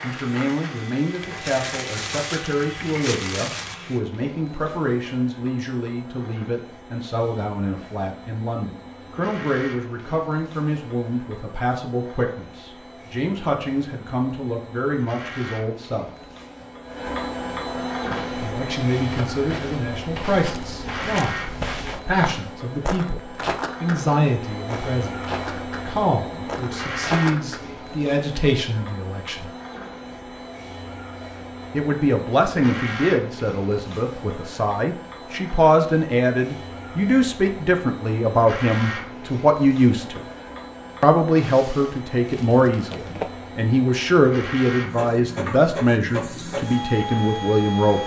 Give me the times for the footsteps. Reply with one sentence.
You can hear the footsteps from 17.9 to 27.6 s.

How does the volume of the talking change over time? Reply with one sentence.
The loudness of the talking goes up.